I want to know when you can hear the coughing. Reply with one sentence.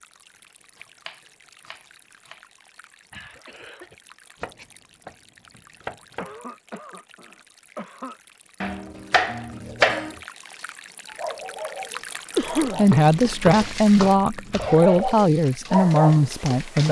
You can hear the coughing from 3.1 to 4.0 s, from 6.2 to 8.2 s and from 12.3 to 12.8 s.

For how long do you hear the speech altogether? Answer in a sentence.
The speech can be heard for 4 seconds in total.